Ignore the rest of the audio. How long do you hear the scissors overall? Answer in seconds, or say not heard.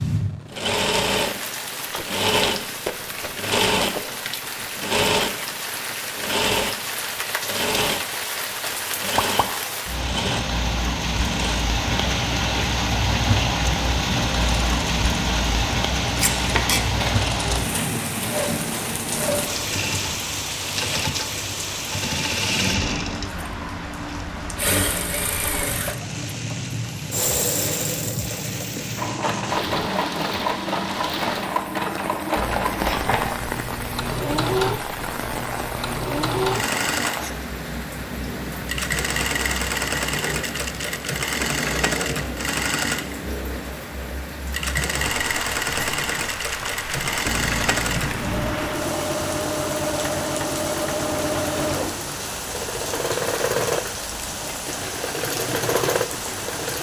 3 s.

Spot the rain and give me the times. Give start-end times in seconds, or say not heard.
0.0-56.7.